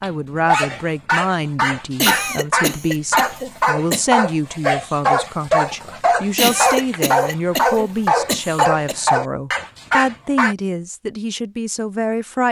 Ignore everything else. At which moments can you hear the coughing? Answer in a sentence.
The coughing can be heard from 1.9 to 4.0 s and from 6.3 to 8.9 s.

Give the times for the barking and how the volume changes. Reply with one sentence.
The barking can be heard from 0.0 to 10.6 s, at a steady volume.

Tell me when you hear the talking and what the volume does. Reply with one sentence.
You can hear the talking from 0.0 to 12.4 s, at a steady volume.